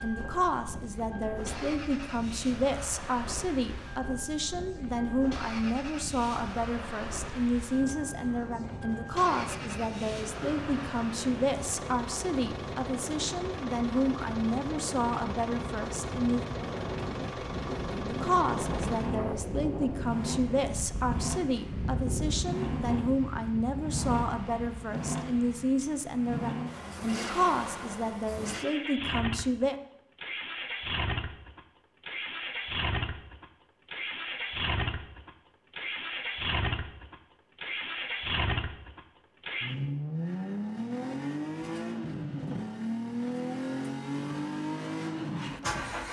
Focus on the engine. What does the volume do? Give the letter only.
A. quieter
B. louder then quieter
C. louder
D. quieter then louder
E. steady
C.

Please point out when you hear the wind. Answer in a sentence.
The wind can be heard from 0.0 to 26.0 s.